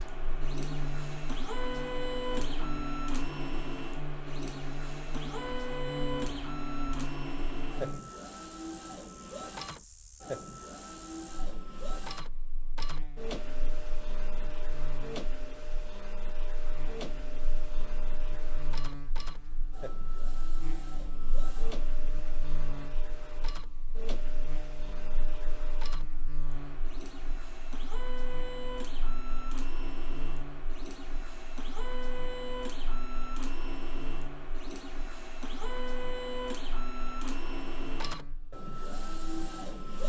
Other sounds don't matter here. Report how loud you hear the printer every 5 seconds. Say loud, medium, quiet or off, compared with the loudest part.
loud, loud, loud, medium, medium, medium, loud, loud.